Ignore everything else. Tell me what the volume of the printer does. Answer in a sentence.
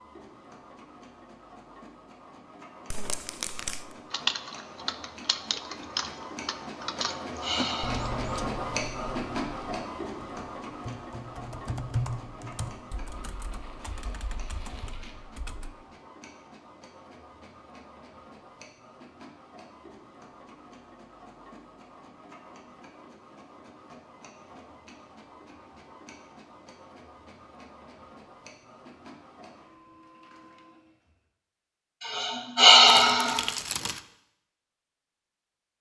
The volume of the printer goes up, then down.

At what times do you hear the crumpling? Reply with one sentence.
You can hear the crumpling from 2.9 to 4.0 s, from 13.2 to 15.2 s and from 32.9 to 34.0 s.